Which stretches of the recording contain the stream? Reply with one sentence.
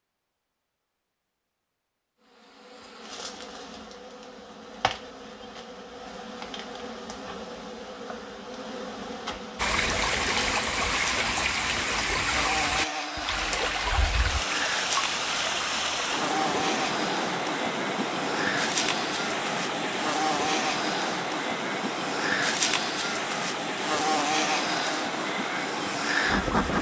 You can hear the stream from 9.6 to 26.7 s.